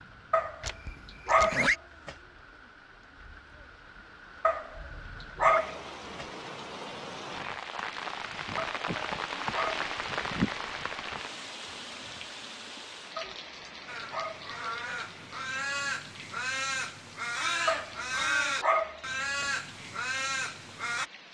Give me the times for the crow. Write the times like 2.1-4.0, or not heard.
13.8-21.1.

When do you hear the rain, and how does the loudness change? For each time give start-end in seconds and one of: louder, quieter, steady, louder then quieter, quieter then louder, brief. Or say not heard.
0.0-21.2 louder then quieter.